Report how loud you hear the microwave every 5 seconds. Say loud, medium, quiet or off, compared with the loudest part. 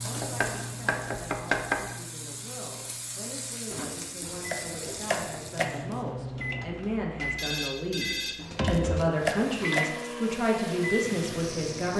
medium, loud, loud.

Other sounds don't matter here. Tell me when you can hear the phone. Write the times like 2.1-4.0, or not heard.
0.1-0.9, 6.3-8.3.